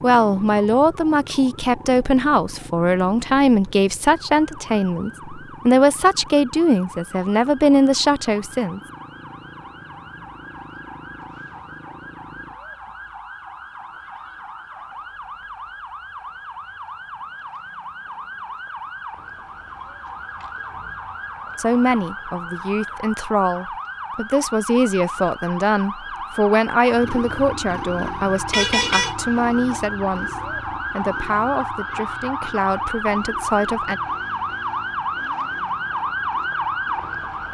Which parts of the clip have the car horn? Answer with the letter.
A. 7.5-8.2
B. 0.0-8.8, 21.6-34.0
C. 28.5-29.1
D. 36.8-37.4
C.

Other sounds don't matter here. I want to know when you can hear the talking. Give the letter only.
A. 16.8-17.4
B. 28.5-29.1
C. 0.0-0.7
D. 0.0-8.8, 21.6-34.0
D.